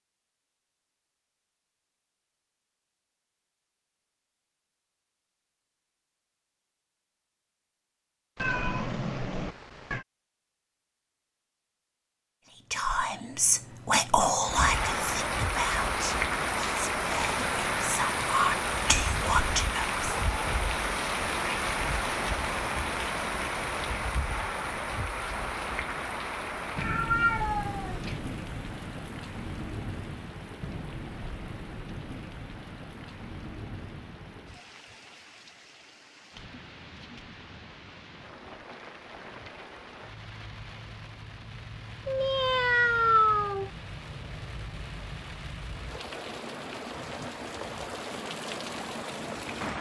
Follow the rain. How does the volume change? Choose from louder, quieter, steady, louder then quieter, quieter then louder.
quieter then louder.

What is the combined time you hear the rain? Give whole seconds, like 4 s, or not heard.
35 s.